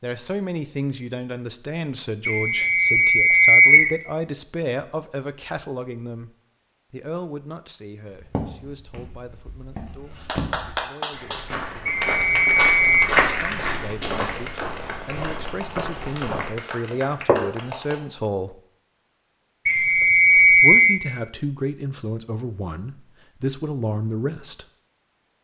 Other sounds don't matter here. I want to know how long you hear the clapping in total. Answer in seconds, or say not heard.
8 s.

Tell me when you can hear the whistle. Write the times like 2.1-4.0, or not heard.
2.2-3.9, 11.8-13.1, 19.6-21.0.